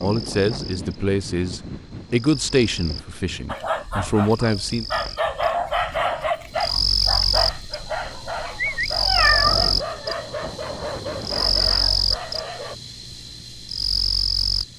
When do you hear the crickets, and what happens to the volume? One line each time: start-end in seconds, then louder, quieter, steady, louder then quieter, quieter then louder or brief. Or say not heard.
0.0-14.7 louder.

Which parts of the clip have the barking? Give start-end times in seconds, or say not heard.
3.5-12.8.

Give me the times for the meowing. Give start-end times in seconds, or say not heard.
9.0-10.2.